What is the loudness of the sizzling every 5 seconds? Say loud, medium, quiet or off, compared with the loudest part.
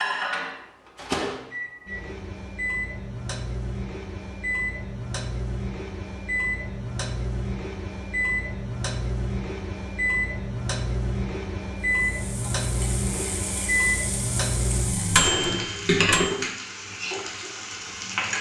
off, off, medium, loud.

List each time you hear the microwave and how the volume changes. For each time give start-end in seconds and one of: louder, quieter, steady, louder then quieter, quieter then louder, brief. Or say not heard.
0.0-16.4 louder.